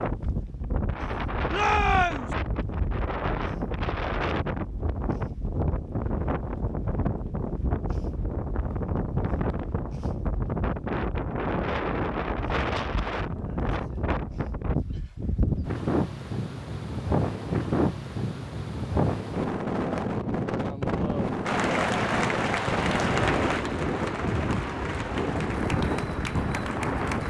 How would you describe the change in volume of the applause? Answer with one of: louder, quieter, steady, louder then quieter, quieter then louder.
quieter.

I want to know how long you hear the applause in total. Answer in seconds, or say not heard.
6 s.